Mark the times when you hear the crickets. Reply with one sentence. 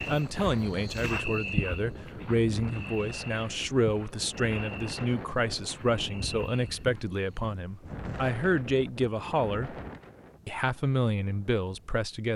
The crickets can be heard from 0.0 to 7.5 s.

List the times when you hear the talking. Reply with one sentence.
You can hear the talking from 0.1 to 9.8 s and from 10.4 to 12.3 s.